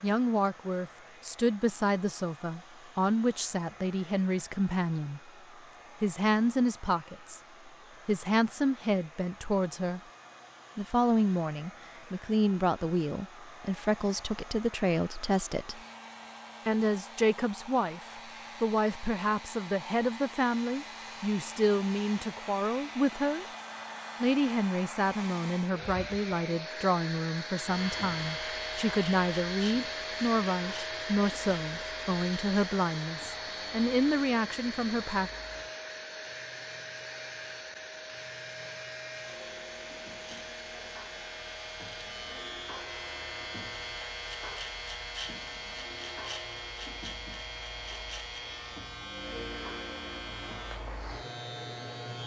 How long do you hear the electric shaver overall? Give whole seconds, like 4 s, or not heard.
25 s.